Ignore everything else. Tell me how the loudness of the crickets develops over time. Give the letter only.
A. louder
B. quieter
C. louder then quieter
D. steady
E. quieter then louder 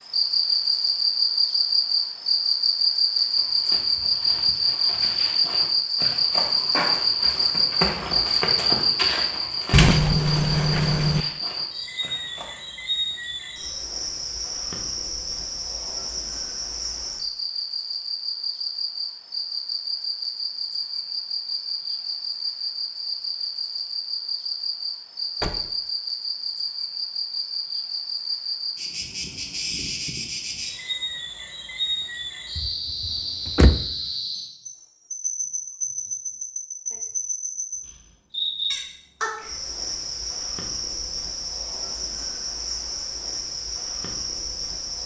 B.